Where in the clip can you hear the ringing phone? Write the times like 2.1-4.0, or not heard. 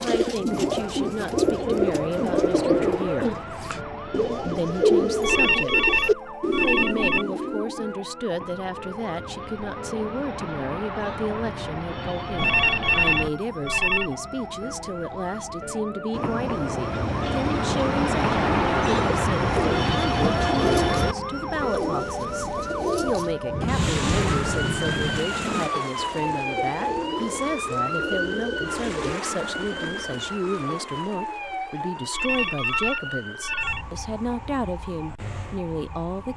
5.2-7.2, 12.3-14.1, 32.1-33.9.